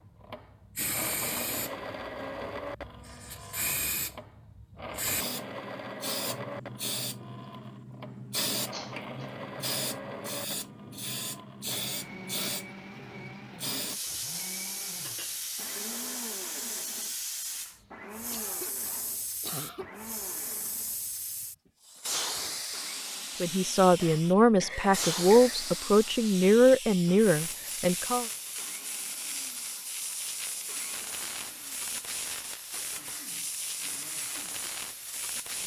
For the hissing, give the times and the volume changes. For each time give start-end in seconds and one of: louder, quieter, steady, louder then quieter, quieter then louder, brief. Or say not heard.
0.0-35.6 steady.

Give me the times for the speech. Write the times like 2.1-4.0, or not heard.
23.4-28.2.